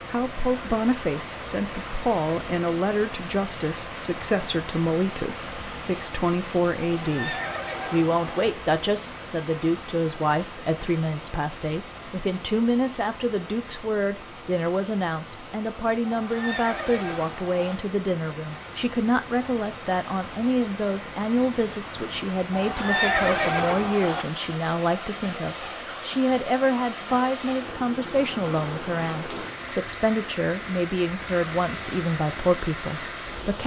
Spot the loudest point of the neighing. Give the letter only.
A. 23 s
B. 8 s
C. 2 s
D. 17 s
A.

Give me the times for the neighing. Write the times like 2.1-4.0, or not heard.
6.9-8.5, 16.1-17.8, 22.5-24.2.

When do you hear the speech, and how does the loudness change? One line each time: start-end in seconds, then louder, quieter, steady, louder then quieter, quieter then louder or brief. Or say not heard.
0.1-33.6 steady.